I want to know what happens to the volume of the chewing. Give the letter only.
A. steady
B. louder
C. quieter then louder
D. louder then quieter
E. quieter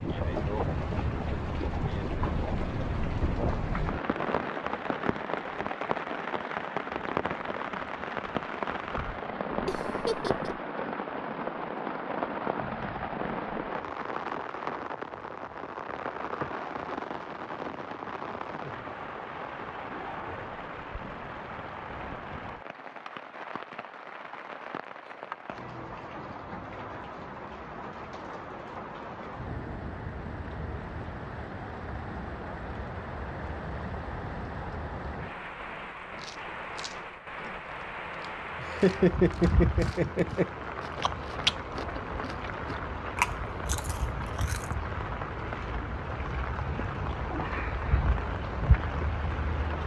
B.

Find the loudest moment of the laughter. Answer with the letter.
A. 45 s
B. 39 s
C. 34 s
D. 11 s
B.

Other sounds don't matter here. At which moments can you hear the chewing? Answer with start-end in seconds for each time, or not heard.
36.1-44.8.